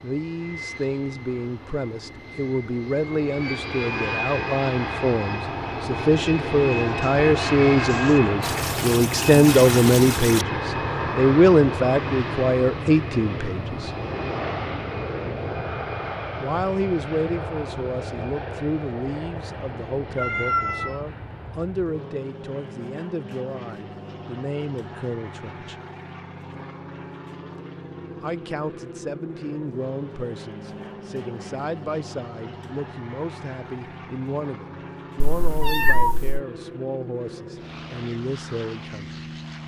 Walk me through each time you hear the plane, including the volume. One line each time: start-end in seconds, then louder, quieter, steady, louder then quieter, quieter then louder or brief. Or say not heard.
0.0-39.6 quieter.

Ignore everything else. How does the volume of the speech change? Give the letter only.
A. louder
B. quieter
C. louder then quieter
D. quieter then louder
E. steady
C.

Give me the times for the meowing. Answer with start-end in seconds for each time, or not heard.
6.8-8.2, 20.1-21.0, 35.2-36.4.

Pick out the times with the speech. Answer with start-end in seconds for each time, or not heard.
0.0-13.9, 16.4-25.8, 28.2-39.1.